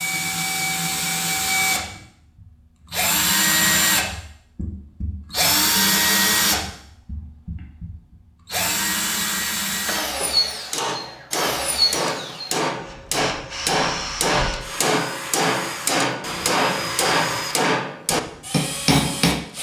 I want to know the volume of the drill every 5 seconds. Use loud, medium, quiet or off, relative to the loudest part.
loud, loud, medium, medium.